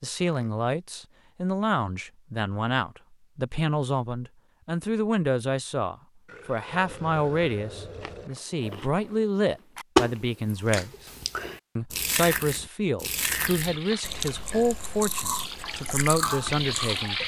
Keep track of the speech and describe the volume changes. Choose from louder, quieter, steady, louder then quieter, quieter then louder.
steady.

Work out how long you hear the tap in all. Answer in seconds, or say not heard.
4 s.